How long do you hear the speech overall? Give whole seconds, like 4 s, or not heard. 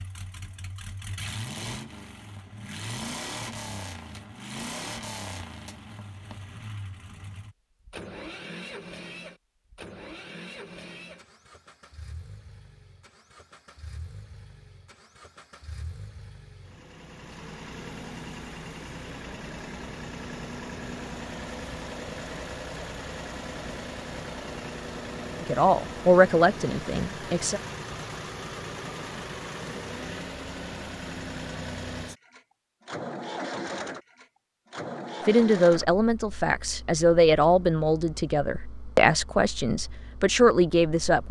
8 s.